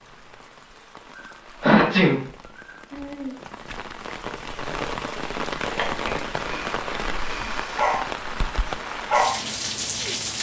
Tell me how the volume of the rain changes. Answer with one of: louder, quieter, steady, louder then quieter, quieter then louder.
louder.